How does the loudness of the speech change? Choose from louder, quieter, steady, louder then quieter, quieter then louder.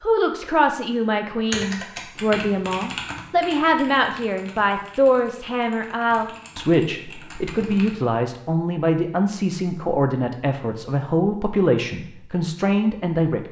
steady.